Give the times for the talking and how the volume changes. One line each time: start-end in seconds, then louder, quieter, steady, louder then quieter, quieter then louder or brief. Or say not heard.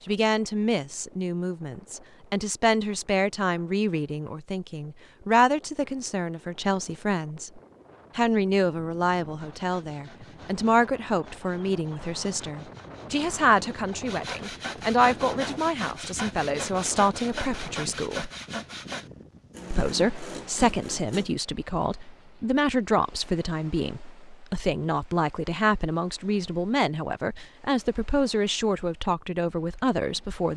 0.1-18.3 steady
19.7-30.5 steady.